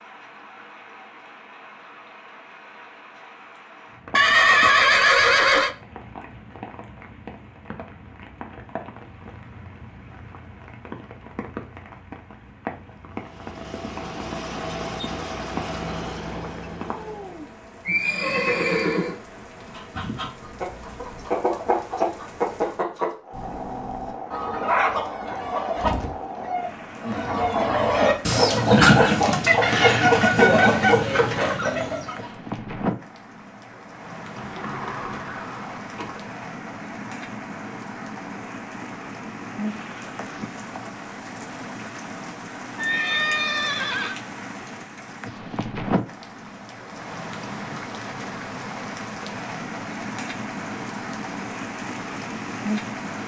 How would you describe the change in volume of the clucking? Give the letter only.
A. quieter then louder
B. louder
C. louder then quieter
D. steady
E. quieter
B.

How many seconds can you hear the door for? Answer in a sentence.
You can hear the door for 2 seconds altogether.